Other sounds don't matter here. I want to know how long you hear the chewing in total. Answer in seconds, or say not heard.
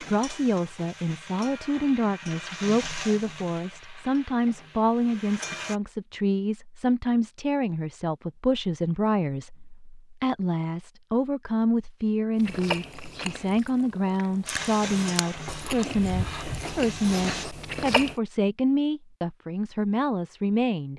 6 s.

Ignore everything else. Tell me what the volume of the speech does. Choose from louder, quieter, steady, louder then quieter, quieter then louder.
steady.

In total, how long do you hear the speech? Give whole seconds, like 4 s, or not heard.
21 s.